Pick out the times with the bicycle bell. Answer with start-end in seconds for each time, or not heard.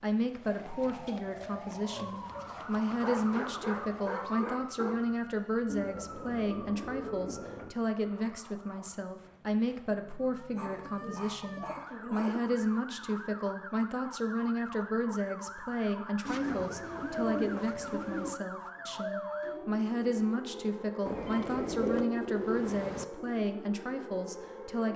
not heard.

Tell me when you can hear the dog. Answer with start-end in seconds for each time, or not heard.
3.0-5.0, 10.6-12.4, 16.7-19.6.